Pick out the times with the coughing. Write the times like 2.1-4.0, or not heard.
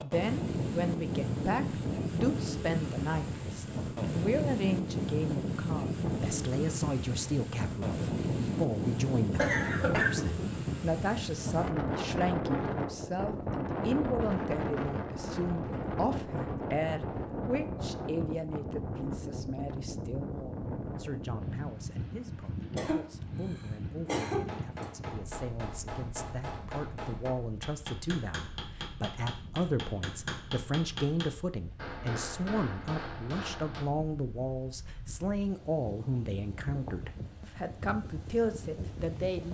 9.3-10.3, 22.7-24.9.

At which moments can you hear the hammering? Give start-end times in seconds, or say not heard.
24.2-33.9.